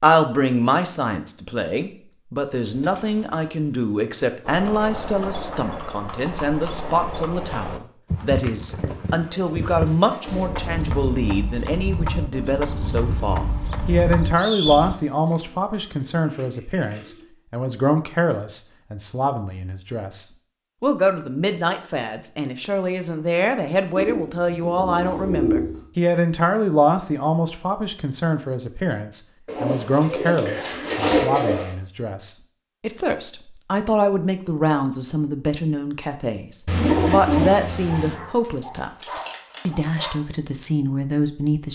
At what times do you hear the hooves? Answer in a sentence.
The hooves can be heard from 4.5 to 14.9 s.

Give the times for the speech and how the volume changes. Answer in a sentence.
The speech can be heard from 0.0 to 41.7 s, at a steady volume.